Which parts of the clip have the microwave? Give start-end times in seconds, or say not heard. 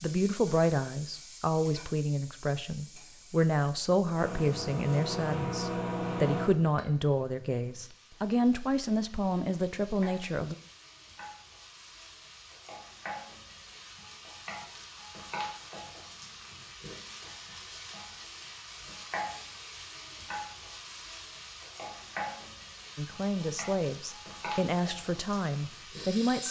4.2-6.5.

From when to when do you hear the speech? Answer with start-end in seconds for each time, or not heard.
0.0-10.6, 22.9-26.4.